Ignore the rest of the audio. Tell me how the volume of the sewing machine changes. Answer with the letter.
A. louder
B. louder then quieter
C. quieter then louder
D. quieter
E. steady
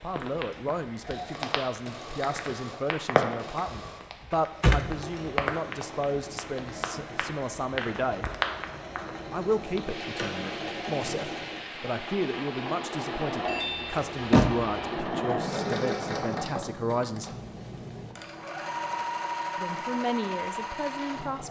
A.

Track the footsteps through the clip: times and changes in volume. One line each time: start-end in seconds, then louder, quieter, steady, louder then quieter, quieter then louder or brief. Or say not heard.
not heard.